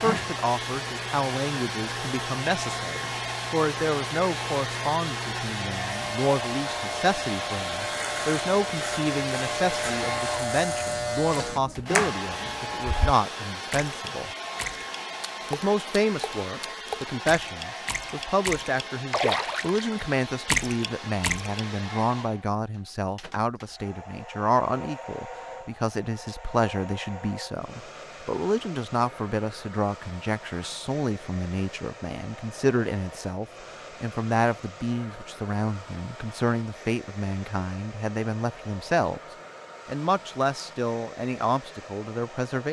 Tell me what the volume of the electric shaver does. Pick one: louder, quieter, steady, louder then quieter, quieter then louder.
louder.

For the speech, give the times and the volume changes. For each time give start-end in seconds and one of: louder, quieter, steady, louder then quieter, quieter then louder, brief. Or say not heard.
0.0-14.3 steady
15.5-39.2 steady
39.9-42.6 brief.